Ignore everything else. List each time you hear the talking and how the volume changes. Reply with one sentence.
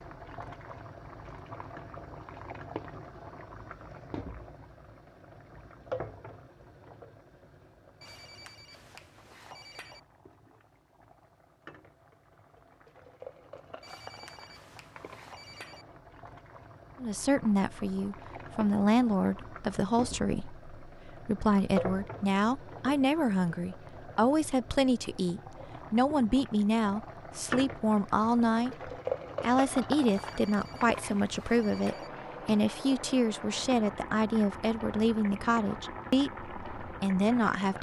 The talking can be heard from 17.0 to 37.7 s, at a steady volume.